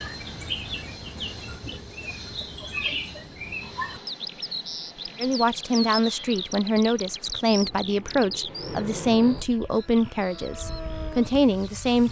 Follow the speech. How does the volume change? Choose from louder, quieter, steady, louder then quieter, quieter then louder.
steady.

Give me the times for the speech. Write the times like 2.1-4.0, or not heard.
5.2-12.0.